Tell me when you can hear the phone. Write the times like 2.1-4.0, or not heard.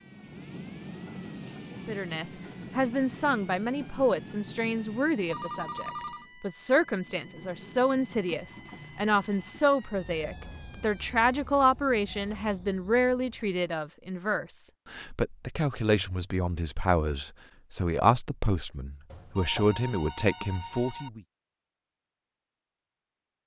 5.2-6.2, 19.1-21.1.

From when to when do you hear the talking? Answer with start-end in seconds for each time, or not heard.
1.8-21.2.